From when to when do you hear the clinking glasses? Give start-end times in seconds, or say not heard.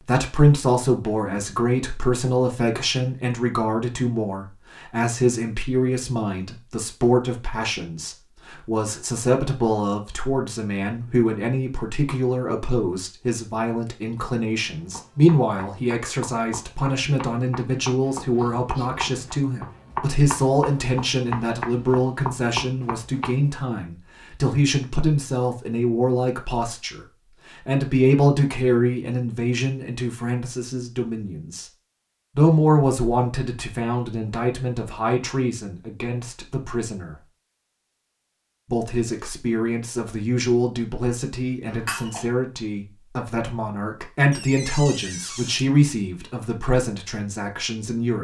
41.6-42.2.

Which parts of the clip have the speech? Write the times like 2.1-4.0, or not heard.
0.0-31.7, 32.4-37.1, 38.7-48.1.